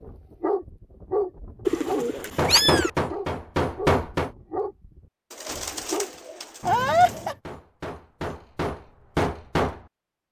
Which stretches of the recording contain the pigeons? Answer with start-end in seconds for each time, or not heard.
1.6-2.9, 5.3-7.3.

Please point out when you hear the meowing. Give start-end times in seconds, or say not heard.
2.5-2.9, 6.6-7.3.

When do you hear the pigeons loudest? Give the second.
2 s.